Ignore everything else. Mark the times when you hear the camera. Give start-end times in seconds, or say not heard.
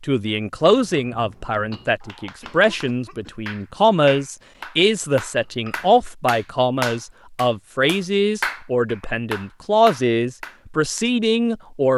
not heard.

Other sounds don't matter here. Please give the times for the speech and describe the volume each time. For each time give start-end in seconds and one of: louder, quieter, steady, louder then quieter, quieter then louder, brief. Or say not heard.
0.0-11.9 steady.